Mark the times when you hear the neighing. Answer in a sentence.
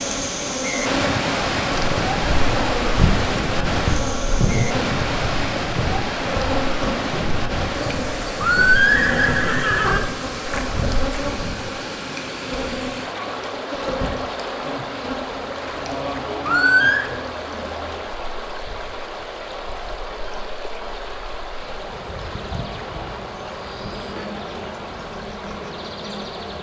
You can hear the neighing from 8.4 to 10.0 s and from 16.4 to 17.1 s.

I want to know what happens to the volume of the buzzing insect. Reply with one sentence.
The volume of the buzzing insect goes down.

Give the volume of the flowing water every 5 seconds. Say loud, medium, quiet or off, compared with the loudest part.
loud, loud, medium, medium, medium, medium.